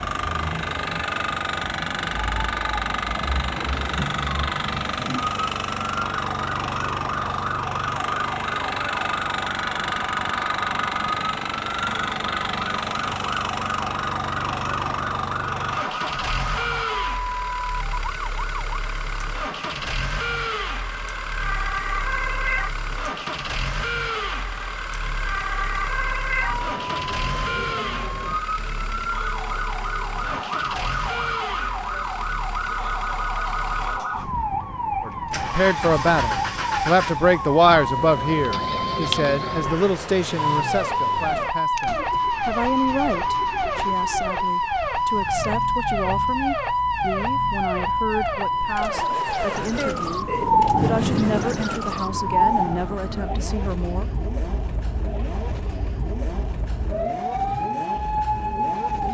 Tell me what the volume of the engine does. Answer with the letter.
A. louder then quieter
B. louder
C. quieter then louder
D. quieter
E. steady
D.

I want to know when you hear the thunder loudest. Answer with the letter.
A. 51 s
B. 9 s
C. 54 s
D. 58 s
A.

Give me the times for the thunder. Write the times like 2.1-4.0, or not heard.
49.8-51.8.